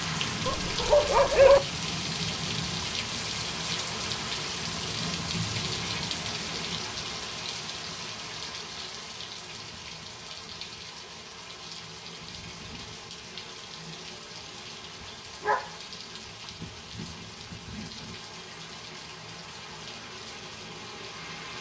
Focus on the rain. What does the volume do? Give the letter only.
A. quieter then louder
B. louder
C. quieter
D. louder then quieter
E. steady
C.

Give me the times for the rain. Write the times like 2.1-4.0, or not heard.
0.0-21.5.